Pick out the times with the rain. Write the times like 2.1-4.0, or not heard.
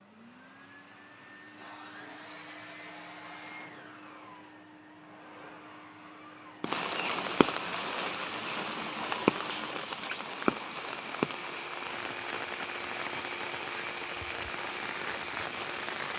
6.6-16.1.